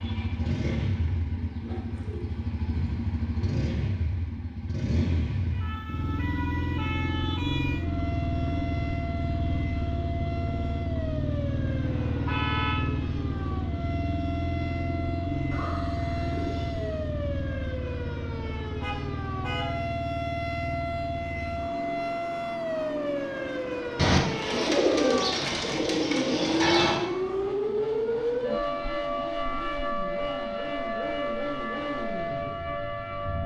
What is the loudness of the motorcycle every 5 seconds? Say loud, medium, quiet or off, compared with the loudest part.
loud, loud, loud, loud, medium, medium, medium.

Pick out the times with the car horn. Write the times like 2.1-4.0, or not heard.
11.8-12.8, 18.8-19.8.